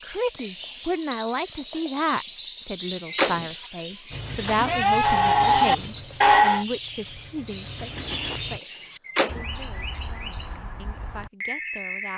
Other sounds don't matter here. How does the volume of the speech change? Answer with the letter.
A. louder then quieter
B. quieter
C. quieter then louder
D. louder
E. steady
B.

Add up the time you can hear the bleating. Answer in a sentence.
The bleating can be heard for 2 seconds in total.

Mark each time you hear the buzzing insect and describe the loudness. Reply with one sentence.
The buzzing insect can't be heard in this clip.